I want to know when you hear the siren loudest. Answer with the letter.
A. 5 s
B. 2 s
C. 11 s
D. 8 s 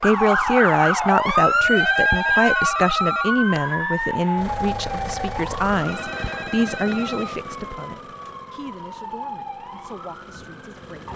B.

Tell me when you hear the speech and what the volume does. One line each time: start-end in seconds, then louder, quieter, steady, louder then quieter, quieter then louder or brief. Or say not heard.
0.0-11.1 quieter.